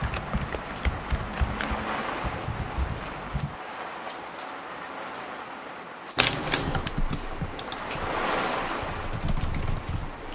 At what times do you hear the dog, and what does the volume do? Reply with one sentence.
You can't hear the dog here.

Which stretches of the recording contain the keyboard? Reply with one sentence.
You can hear the keyboard from 0.0 to 3.6 s and from 6.5 to 10.2 s.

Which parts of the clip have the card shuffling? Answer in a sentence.
The card shuffling can be heard from 0.0 to 2.0 s and from 6.2 to 6.9 s.